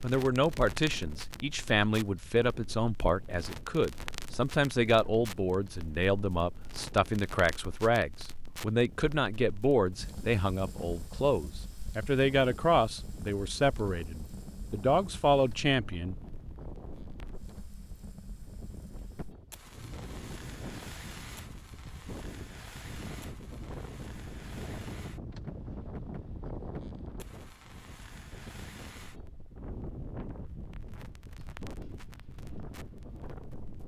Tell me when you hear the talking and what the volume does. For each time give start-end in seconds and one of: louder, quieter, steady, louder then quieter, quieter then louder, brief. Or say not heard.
0.0-16.1 steady.